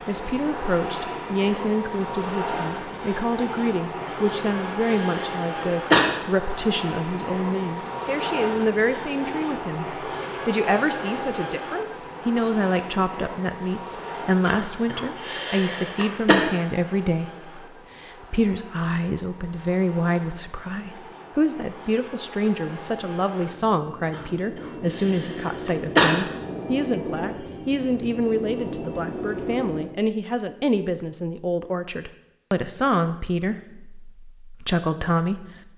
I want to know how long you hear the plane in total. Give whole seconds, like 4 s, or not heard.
30 s.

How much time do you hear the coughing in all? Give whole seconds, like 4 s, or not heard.
6 s.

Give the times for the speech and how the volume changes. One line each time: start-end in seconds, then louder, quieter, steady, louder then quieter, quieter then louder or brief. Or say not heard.
0.1-35.7 steady.